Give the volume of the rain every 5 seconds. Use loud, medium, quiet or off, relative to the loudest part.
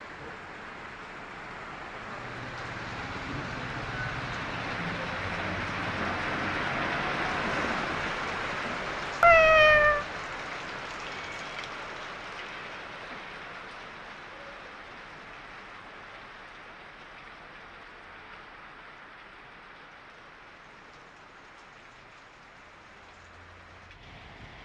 medium, loud, medium, quiet, quiet.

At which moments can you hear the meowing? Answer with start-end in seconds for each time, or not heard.
9.2-10.1.